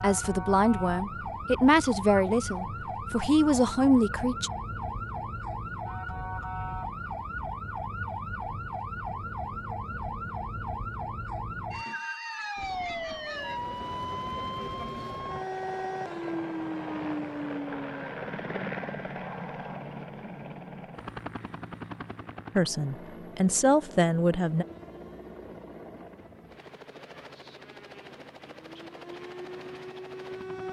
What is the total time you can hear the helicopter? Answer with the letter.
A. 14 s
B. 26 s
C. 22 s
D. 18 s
D.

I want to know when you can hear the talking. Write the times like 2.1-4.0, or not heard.
0.0-4.5, 22.6-24.6.